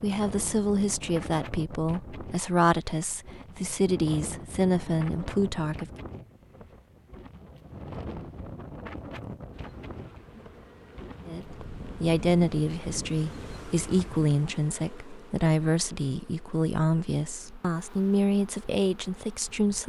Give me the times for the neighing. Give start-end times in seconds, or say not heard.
not heard.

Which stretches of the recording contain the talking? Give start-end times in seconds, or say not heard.
0.0-5.9, 11.2-19.8.